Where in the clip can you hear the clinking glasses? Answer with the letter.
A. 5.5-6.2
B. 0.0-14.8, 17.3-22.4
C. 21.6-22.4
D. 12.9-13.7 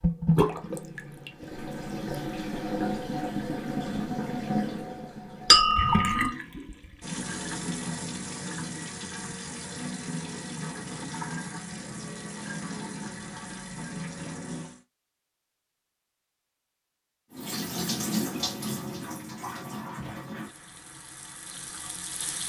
A.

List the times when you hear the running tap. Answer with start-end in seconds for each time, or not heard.
0.0-14.8, 17.3-22.4.